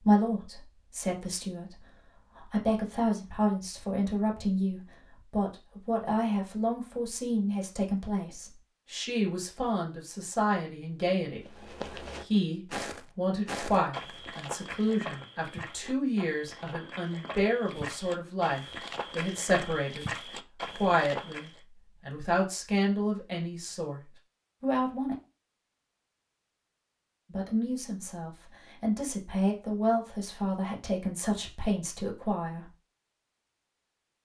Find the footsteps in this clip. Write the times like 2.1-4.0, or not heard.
11.4-21.6.